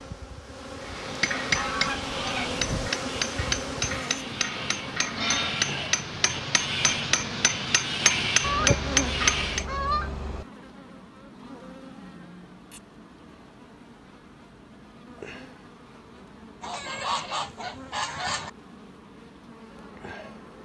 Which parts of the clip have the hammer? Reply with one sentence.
You can hear the hammer from 0.8 to 9.7 s.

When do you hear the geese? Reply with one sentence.
The geese can be heard from 1.6 to 2.9 s, from 8.4 to 10.4 s and from 16.6 to 18.5 s.